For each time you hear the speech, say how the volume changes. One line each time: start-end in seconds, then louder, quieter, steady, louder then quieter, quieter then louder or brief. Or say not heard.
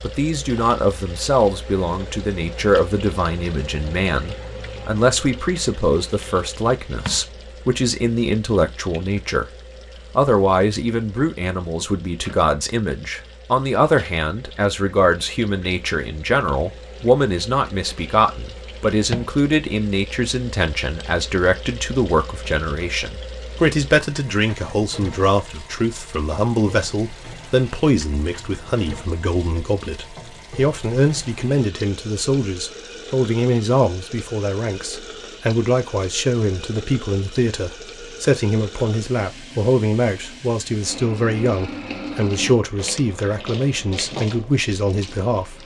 0.0-9.6 steady
10.2-45.6 steady.